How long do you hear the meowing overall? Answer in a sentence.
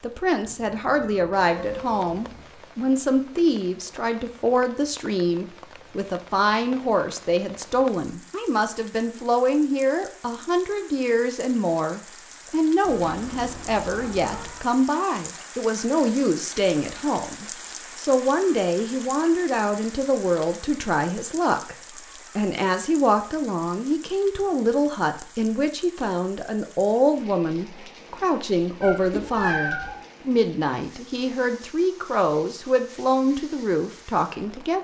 The meowing can be heard for 5 seconds in total.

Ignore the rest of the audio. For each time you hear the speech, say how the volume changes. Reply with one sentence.
The speech can be heard from 0.0 to 34.7 s, at a steady volume.